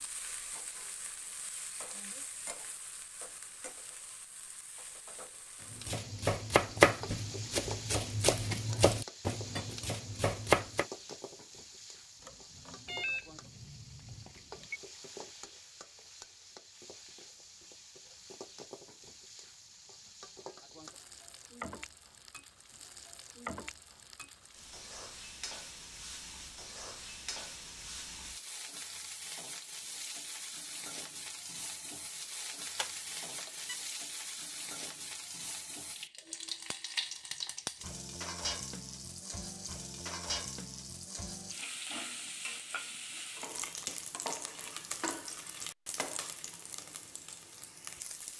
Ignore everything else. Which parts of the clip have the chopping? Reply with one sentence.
The chopping can be heard from 5.7 to 10.8 s.